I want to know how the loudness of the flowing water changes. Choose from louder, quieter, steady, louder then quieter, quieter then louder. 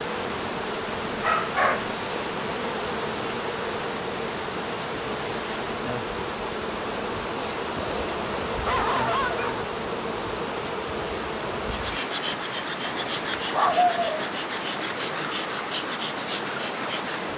steady.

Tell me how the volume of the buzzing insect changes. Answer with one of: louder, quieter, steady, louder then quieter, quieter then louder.
steady.